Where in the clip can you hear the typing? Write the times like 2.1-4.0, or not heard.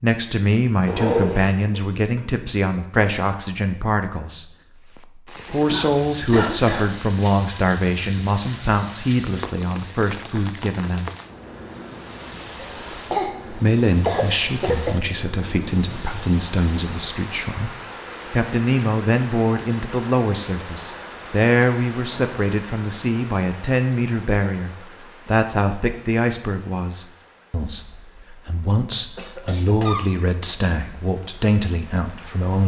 not heard.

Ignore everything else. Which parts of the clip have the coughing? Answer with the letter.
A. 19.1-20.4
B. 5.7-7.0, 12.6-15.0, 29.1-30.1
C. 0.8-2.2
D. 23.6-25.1
B.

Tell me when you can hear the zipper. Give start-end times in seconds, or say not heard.
0.8-2.2.